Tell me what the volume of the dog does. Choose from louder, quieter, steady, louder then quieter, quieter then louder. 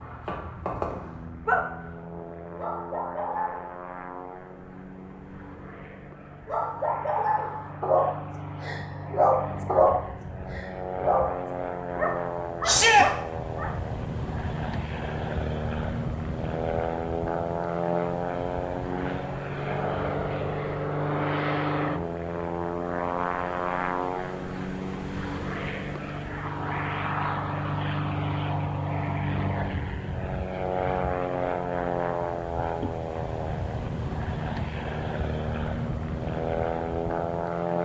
louder then quieter.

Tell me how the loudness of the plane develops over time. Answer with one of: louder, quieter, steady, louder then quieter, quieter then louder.
louder.